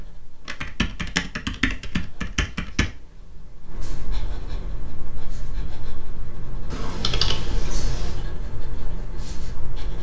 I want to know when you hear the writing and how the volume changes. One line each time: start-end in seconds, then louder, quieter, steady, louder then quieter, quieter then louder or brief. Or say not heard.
0.0-9.9 louder.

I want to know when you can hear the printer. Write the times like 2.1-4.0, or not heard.
not heard.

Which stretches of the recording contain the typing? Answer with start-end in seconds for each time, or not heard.
0.5-2.9, 6.7-8.2.